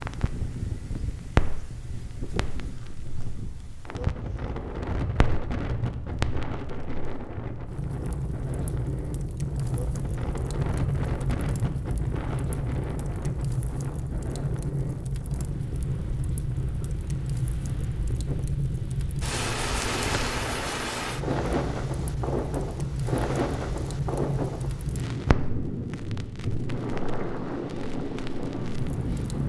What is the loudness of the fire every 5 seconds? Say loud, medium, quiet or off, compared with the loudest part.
loud, loud, loud, loud, loud, medium.